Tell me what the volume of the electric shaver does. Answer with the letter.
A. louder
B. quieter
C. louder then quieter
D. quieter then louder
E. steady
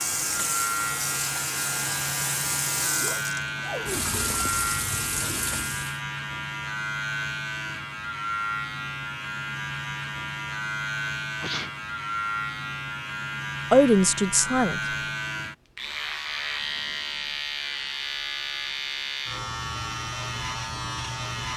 E.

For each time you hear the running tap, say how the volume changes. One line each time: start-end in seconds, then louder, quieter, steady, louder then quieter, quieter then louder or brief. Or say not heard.
0.0-6.0 steady.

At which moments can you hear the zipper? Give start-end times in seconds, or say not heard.
3.0-4.7.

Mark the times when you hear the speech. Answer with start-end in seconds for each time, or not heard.
13.7-14.8.